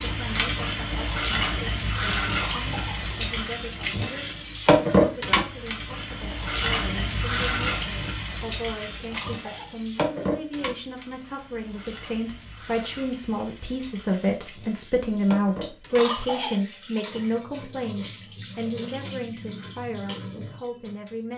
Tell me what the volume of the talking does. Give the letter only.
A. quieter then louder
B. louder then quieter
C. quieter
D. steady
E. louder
B.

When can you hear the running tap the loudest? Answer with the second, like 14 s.
5 s.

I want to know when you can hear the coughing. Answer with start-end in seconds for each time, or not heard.
2.4-3.0, 9.1-9.8, 15.9-16.6.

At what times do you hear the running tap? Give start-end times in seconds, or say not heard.
0.0-21.3.